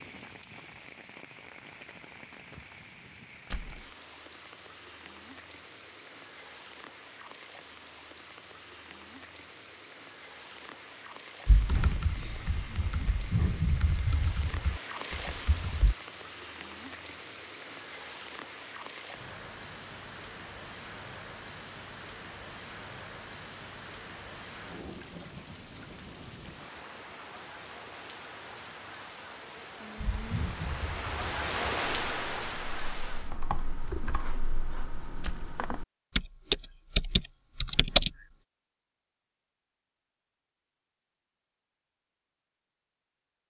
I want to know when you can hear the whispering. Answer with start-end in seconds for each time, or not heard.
not heard.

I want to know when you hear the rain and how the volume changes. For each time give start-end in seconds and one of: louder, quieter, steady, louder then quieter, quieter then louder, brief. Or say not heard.
0.0-33.4 louder.